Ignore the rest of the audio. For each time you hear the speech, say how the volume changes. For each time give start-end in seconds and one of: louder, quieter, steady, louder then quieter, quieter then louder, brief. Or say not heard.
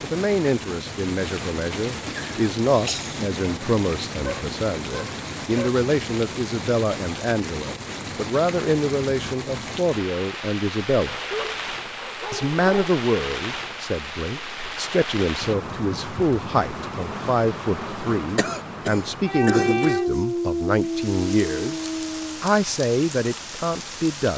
0.0-11.2 steady
12.3-24.3 steady.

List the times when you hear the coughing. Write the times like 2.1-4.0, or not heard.
2.0-3.4, 18.4-20.0.